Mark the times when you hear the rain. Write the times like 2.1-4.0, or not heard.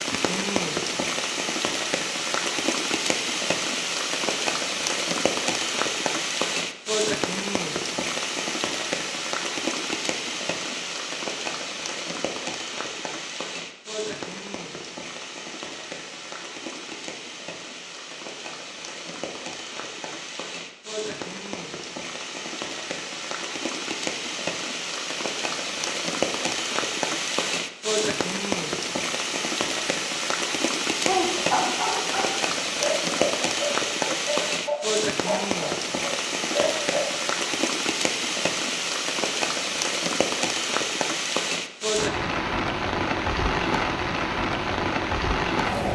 0.0-45.8.